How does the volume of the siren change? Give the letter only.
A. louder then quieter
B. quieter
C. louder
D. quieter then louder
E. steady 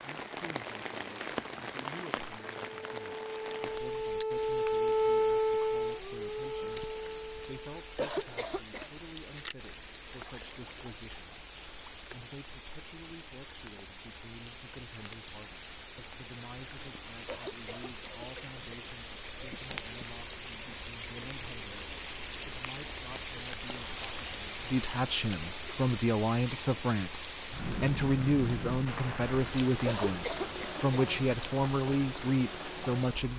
A.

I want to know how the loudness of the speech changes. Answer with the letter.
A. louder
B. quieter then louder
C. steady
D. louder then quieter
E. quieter
A.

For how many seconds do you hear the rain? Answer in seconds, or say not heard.
33 s.